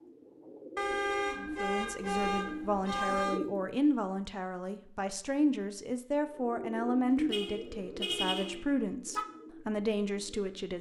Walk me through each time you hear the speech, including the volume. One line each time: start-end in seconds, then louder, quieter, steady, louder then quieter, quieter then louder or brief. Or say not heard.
1.4-10.7 steady.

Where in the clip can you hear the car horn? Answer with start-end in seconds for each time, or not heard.
0.8-3.4, 7.3-9.2.